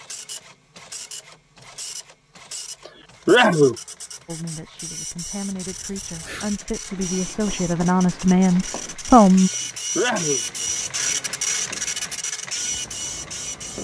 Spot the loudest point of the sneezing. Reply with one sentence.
The loudest moment of the sneezing is at 3 seconds.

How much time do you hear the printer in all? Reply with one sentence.
You can hear the printer for 14 seconds altogether.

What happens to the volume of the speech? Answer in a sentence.
The volume of the speech goes up.